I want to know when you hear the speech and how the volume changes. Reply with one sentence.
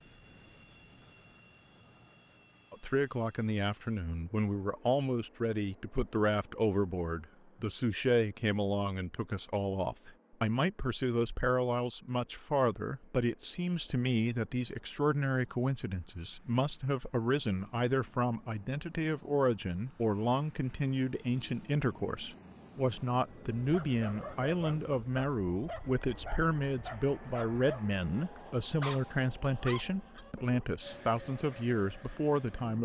You can hear the speech from 2.7 to 32.8 s, at a steady volume.